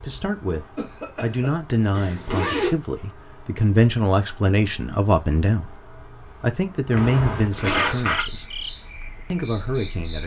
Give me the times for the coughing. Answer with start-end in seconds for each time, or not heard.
0.8-1.5, 7.6-8.1.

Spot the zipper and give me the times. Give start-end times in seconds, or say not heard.
1.9-2.8, 6.9-8.2.